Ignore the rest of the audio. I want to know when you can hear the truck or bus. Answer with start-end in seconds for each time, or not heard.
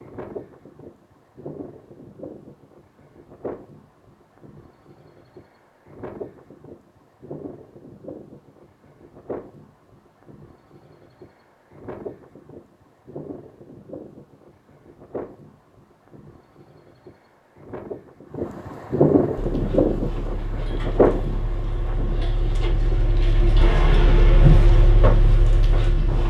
19.4-26.2.